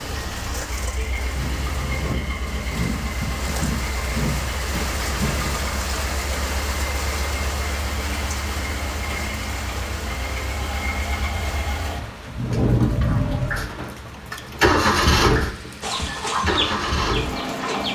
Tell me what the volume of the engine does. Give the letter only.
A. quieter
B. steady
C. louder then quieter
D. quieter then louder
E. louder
E.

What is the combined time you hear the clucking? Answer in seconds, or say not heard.
2 s.